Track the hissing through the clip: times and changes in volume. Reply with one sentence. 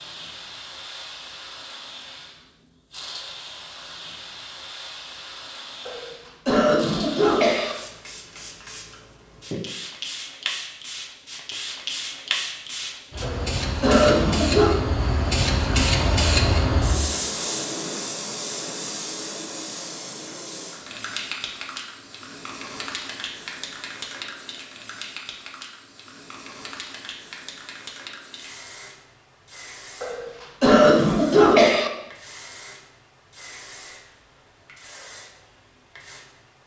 You can hear the hissing from 0.0 to 36.6 s, getting louder then quieter.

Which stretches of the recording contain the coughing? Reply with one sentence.
The coughing can be heard from 5.8 to 7.8 s, from 13.2 to 14.8 s and from 30.0 to 31.9 s.